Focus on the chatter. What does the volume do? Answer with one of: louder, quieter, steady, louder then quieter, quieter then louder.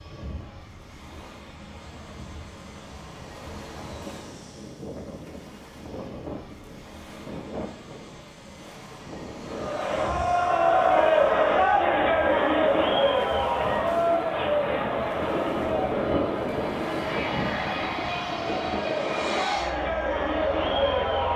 quieter then louder.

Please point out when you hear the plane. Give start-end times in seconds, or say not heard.
0.0-21.3.